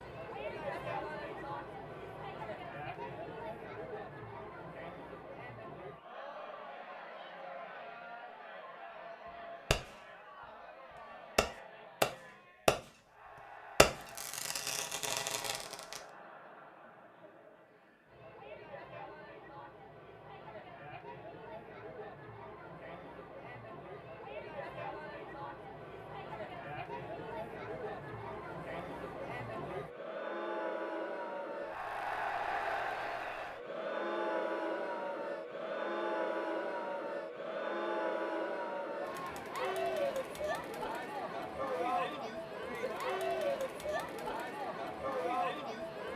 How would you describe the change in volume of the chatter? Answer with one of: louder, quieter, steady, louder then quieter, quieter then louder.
quieter then louder.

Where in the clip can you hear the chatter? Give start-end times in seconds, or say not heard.
0.0-46.1.